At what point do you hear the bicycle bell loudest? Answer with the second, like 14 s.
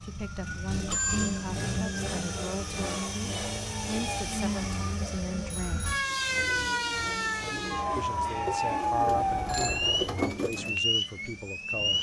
1 s.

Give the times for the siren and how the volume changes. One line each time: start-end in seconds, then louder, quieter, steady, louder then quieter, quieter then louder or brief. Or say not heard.
0.0-11.9 louder.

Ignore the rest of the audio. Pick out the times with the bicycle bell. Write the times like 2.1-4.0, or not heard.
0.8-1.6, 5.4-6.0, 9.1-10.1.